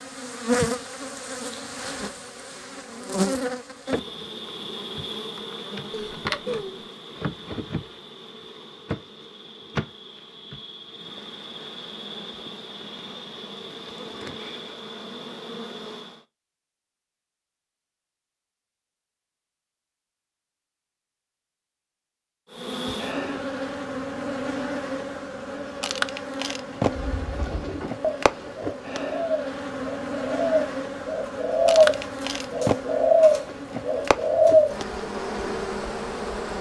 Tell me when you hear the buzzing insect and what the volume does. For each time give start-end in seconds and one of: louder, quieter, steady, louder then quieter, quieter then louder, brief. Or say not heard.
0.0-16.2 quieter
22.5-36.5 steady.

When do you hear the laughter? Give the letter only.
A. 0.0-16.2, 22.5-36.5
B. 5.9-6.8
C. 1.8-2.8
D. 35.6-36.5
B.